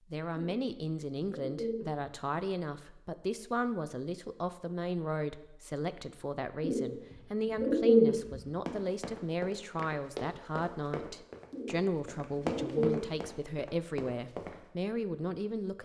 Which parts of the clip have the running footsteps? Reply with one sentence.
The running footsteps can be heard from 8.7 to 14.6 s.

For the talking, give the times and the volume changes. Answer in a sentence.
You can hear the talking from 0.1 to 15.7 s, at a steady volume.